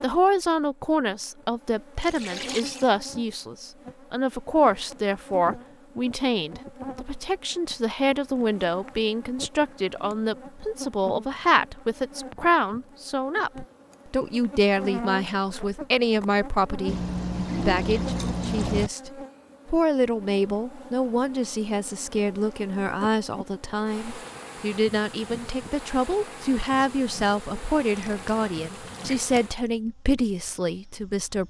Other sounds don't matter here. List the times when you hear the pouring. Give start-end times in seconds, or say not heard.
2.0-2.9, 16.9-18.9, 27.9-29.4.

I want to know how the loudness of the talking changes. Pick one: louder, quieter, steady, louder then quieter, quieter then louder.
steady.